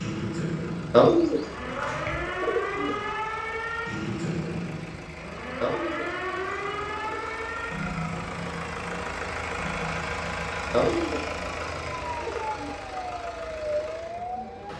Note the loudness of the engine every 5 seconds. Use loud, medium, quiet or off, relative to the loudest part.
medium, loud, loud.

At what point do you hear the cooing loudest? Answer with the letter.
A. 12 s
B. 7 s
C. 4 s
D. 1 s
D.